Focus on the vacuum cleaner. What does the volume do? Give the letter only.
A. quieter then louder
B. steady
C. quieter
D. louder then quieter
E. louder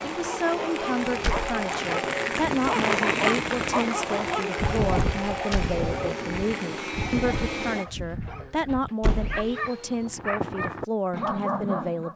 C.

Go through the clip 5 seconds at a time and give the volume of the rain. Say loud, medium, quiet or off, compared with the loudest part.
loud, medium, off.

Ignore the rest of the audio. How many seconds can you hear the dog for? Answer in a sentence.
You can hear the dog for 12 seconds altogether.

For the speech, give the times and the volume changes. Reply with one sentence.
You can hear the speech from 0.0 to 12.1 s, at a steady volume.